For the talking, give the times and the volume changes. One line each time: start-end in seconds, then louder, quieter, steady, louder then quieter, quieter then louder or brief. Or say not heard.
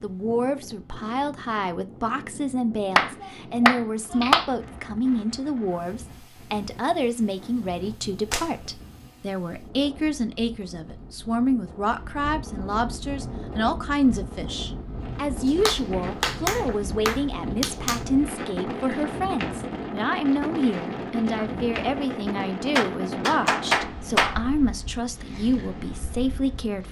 0.0-26.8 steady.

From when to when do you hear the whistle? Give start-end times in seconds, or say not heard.
not heard.